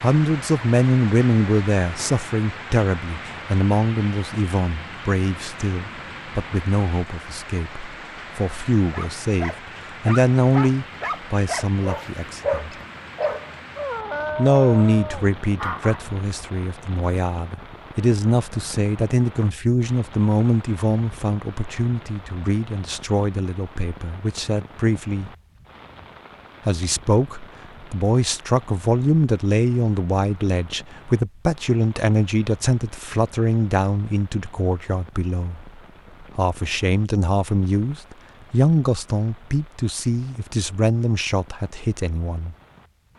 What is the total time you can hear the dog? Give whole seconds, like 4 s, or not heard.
7 s.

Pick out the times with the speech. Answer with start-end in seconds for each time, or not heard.
0.0-12.7, 14.3-25.3, 26.6-42.5.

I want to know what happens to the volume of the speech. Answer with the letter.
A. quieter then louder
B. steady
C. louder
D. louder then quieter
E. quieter
B.